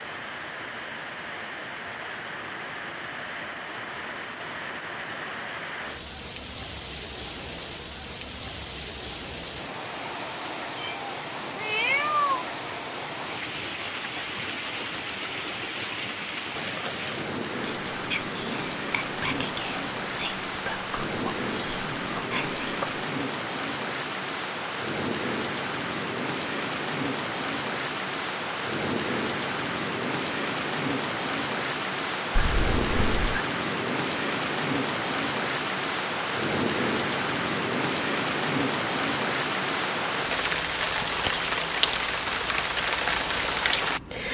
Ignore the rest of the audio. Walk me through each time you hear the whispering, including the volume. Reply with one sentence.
You can hear the whispering from 17.6 to 23.1 s, getting quieter then louder.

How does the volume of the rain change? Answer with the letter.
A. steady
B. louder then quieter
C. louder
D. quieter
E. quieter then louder
C.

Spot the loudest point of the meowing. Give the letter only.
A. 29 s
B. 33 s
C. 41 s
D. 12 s
D.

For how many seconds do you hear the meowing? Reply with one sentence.
You can hear the meowing for 3 seconds altogether.